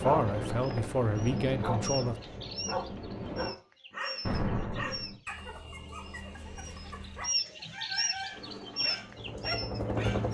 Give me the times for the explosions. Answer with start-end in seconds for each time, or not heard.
4.2-5.2.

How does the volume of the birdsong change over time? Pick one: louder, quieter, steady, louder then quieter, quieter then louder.
louder.